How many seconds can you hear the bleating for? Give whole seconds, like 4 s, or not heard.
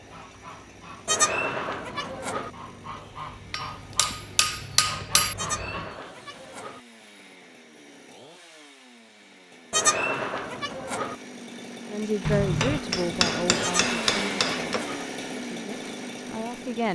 6 s.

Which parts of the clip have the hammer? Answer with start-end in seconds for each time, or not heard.
3.5-5.3, 12.2-14.8.